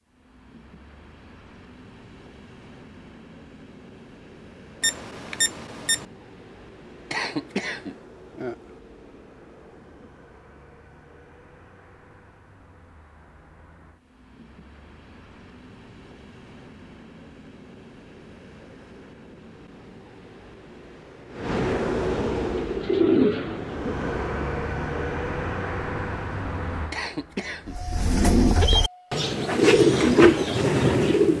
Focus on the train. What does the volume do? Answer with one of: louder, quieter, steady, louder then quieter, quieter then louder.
louder.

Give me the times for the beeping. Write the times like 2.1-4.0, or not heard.
4.8-6.0.